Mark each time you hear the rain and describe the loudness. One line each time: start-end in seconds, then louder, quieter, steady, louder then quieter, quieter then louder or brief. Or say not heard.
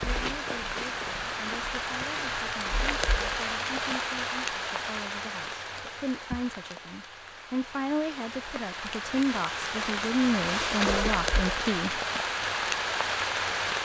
0.0-13.8 quieter then louder.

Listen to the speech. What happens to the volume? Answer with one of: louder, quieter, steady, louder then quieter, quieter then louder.
louder.